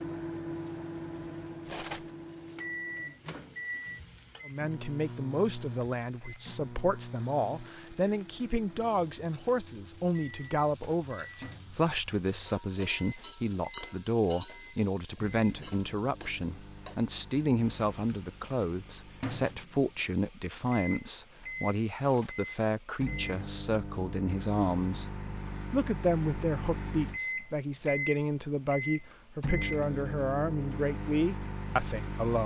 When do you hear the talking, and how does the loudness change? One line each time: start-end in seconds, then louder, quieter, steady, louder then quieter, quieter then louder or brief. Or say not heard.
4.5-32.4 steady.